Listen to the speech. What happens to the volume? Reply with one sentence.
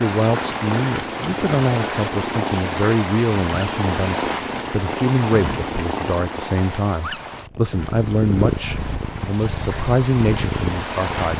The loudness of the speech stays about the same.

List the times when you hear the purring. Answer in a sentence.
You can hear the purring from 0.2 to 11.3 s.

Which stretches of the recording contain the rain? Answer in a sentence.
You can hear the rain from 0.0 to 11.3 s.